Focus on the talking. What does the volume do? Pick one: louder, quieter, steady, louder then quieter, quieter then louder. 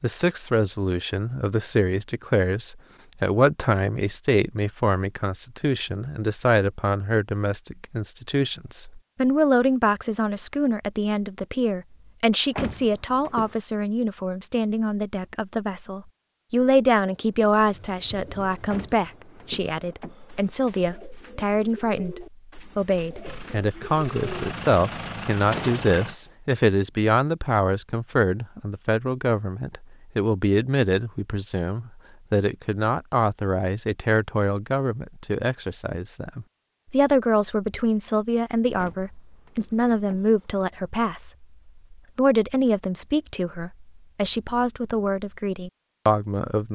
steady.